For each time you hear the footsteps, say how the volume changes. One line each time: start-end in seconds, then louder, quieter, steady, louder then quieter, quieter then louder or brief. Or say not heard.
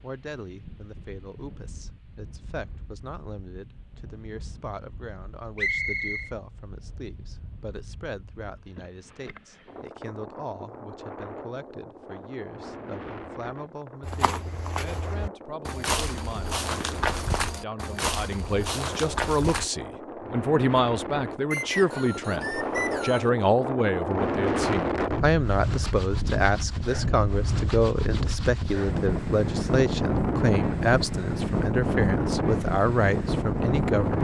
14.0-19.7 louder.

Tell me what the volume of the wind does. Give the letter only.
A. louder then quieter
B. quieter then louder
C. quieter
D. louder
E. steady
D.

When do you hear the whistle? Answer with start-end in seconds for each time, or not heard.
5.5-6.3, 21.5-23.3.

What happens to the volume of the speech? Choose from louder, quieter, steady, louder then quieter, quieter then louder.
louder.